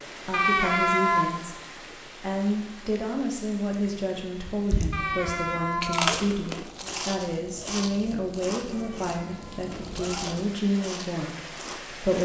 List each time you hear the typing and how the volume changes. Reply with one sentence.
The typing can't be heard in this clip.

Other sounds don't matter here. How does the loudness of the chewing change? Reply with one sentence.
The volume of the chewing goes down.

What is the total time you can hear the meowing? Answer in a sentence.
The meowing can be heard for 4 seconds in total.